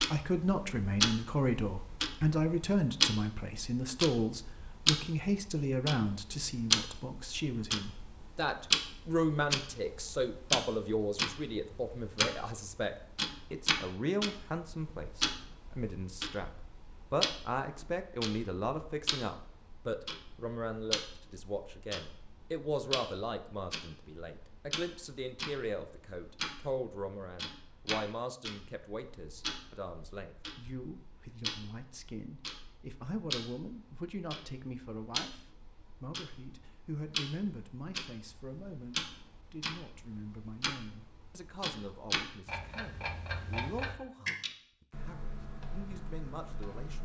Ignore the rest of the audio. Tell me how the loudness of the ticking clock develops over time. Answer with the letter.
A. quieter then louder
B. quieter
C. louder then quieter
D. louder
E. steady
B.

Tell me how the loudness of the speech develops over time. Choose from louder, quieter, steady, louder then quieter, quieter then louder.
quieter.